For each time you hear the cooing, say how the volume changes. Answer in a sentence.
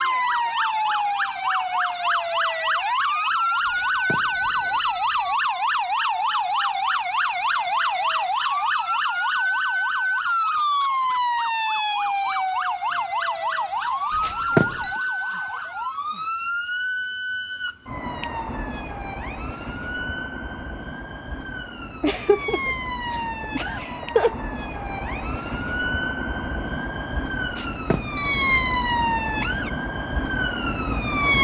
You can't hear the cooing here.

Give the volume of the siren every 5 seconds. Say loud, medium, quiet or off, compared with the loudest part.
loud, loud, loud, medium, medium, loud, loud.